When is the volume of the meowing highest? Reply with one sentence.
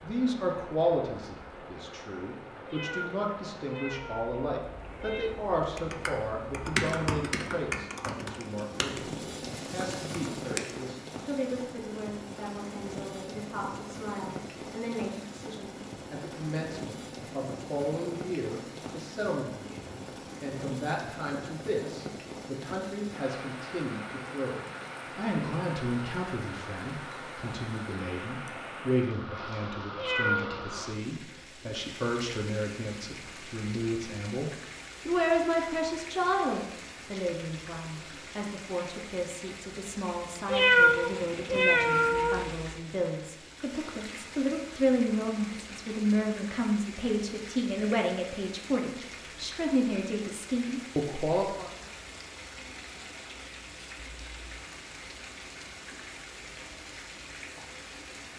The volume of the meowing peaks at 41 seconds.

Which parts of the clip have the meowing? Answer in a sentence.
You can hear the meowing from 2.6 to 5.3 s, from 29.9 to 30.6 s and from 40.5 to 42.5 s.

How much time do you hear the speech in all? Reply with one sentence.
You can hear the speech for 52 seconds altogether.